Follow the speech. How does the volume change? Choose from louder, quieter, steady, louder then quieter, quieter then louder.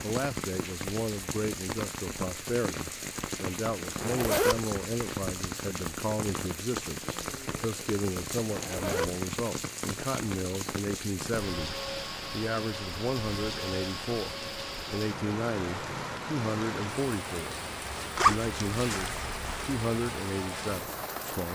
steady.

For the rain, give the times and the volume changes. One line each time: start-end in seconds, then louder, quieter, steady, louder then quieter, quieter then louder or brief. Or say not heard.
0.0-21.5 steady.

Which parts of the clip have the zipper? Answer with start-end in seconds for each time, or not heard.
4.0-4.6, 8.5-9.1, 18.1-19.5.